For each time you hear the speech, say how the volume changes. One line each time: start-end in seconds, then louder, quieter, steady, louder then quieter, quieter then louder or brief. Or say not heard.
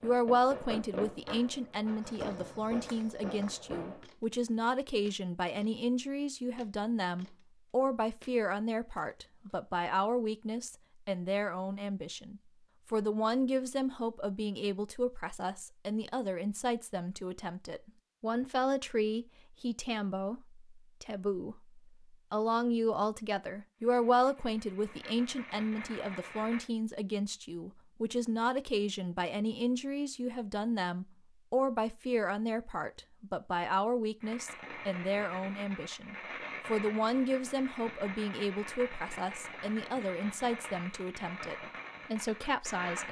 0.0-43.0 steady.